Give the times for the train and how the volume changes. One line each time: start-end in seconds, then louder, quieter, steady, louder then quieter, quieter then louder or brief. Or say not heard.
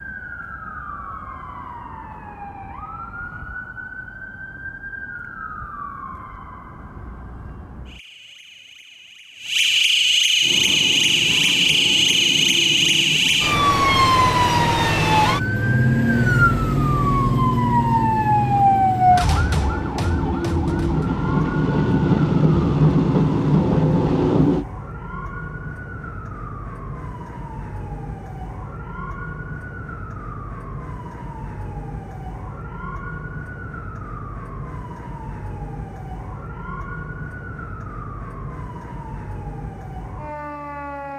10.4-24.6 louder.